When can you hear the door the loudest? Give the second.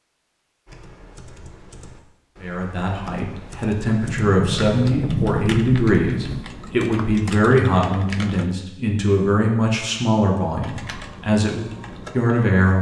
5 s.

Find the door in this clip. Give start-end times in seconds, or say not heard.
4.0-6.5.